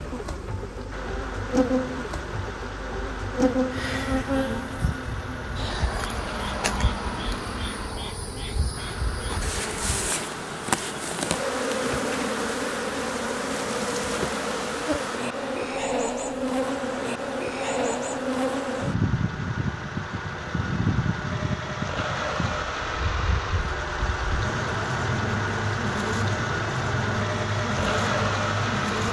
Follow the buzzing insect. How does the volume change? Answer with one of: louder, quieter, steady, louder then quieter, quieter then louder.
steady.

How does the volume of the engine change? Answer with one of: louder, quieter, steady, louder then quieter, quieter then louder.
louder.